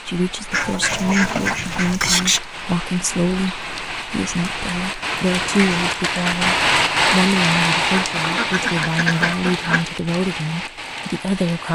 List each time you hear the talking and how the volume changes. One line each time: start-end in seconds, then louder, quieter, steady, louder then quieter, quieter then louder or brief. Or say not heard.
0.1-11.7 steady.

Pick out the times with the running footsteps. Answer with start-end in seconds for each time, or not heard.
not heard.